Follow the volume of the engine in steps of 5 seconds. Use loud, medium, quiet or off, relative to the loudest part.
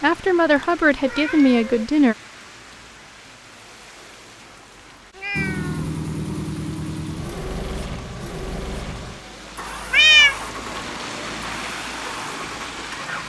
off, loud, medium.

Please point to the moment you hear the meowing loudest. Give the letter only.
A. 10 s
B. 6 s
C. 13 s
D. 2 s
A.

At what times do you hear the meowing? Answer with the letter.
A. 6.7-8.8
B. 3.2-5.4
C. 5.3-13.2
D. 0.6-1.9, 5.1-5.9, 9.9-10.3
D.